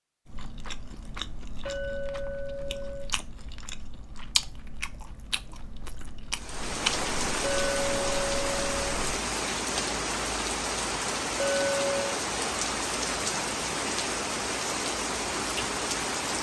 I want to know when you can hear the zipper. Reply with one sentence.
The zipper can't be heard in this clip.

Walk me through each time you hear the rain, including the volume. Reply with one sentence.
The rain can be heard from 6.3 to 16.3 s, at a steady volume.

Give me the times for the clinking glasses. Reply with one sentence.
You can hear the clinking glasses from 1.6 to 3.1 s, from 7.4 to 8.8 s and from 11.3 to 12.2 s.